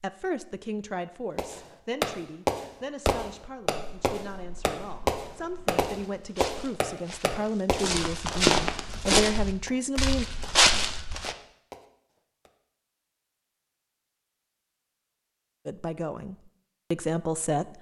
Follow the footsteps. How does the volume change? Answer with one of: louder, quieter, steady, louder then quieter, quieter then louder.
louder.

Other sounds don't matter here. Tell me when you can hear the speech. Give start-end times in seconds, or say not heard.
0.0-10.2, 15.7-17.7.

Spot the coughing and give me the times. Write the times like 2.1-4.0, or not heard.
not heard.